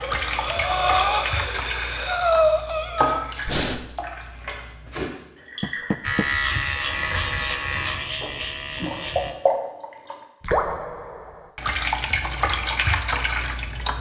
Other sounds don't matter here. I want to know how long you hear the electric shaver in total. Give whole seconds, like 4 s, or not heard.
3 s.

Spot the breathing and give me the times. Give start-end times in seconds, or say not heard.
0.0-3.8.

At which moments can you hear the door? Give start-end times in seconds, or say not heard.
5.6-6.3.